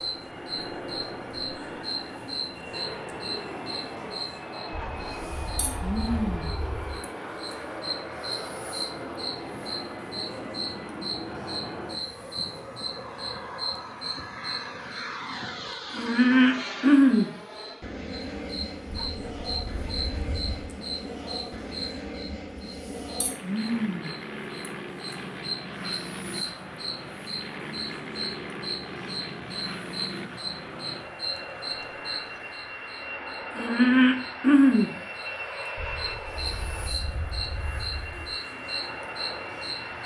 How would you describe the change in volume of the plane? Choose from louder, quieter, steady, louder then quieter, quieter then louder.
steady.